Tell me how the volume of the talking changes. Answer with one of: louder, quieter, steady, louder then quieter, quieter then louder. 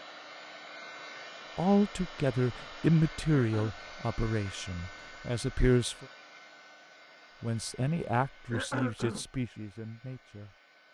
quieter.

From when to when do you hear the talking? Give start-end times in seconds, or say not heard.
1.6-6.0, 7.4-10.5.